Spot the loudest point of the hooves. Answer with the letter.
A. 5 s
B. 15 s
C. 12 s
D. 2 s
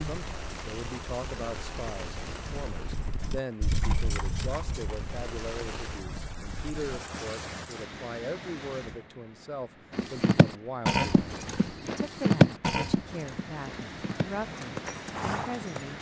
C.